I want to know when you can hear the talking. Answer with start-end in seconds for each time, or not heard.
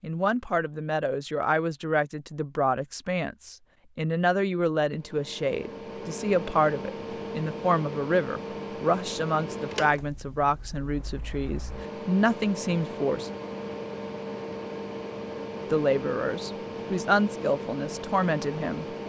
0.0-13.3, 15.6-18.9.